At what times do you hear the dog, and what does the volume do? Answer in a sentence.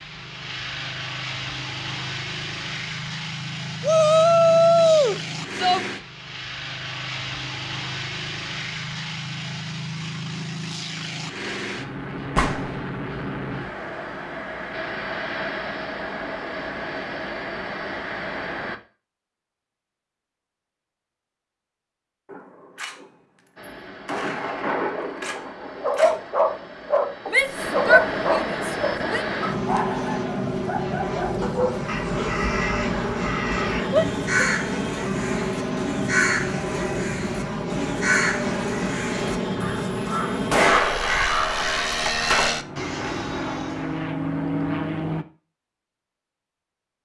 The dog can be heard from 25.4 to 32.5 s, getting quieter.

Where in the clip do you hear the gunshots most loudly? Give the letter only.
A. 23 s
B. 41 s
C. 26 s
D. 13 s
B.